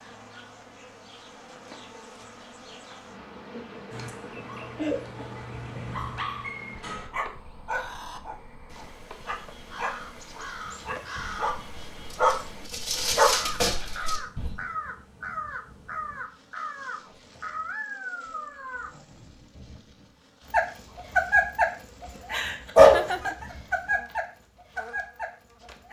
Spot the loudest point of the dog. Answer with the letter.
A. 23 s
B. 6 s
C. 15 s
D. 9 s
A.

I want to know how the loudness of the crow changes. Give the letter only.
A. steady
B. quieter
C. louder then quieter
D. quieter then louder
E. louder
E.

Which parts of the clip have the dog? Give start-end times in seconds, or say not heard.
3.9-14.6, 20.5-25.8.